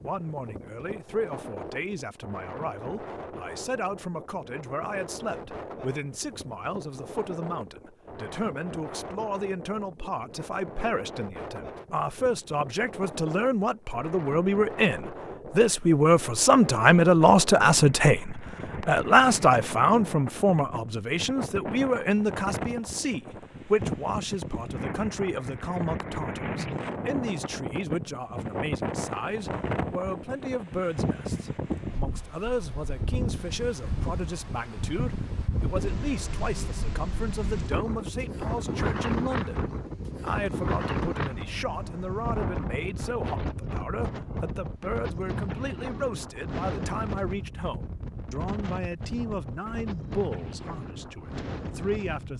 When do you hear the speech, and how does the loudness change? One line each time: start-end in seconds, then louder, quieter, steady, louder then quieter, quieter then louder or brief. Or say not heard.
0.0-52.3 louder then quieter.